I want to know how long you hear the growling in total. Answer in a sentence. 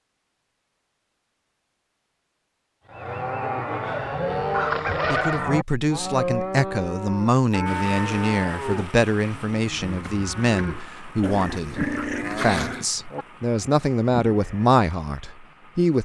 The growling can be heard for 2 seconds in total.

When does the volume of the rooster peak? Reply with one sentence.
The loudest moment of the rooster is at 5 seconds.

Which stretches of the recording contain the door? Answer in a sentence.
You can't hear the door here.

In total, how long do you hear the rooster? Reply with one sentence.
You can hear the rooster for 2 seconds altogether.